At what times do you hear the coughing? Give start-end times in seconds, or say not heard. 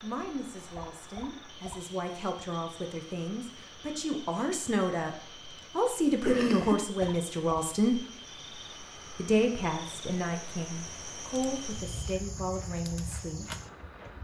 6.2-7.2.